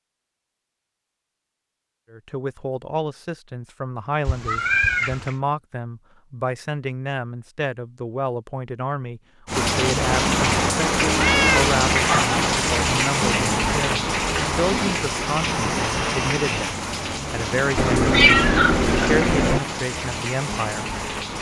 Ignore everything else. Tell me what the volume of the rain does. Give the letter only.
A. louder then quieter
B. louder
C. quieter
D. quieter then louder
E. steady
C.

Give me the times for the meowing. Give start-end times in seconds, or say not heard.
4.2-5.3, 11.2-12.3, 17.8-19.6.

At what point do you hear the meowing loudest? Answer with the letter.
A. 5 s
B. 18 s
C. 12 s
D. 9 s
B.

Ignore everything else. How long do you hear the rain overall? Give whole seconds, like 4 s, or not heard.
12 s.